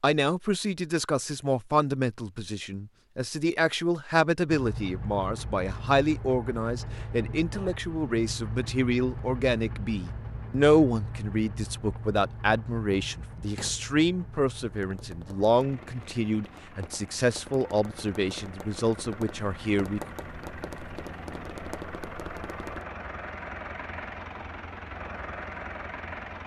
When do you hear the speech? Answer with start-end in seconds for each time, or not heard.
0.0-20.0.